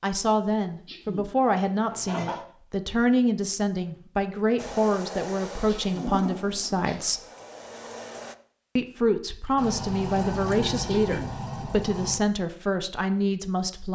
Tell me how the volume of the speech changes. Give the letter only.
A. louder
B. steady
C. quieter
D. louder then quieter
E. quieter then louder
B.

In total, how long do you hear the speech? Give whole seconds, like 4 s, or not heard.
12 s.